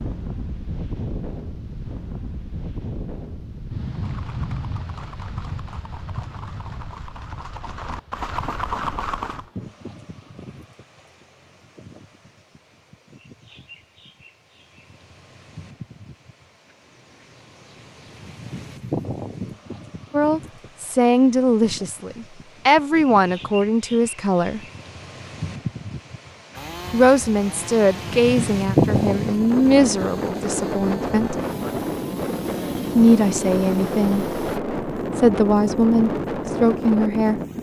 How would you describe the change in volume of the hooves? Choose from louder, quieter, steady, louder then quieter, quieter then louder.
louder.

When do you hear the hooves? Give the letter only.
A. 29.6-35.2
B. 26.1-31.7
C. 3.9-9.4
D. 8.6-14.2
C.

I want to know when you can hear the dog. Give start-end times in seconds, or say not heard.
not heard.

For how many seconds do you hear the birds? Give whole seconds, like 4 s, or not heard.
not heard.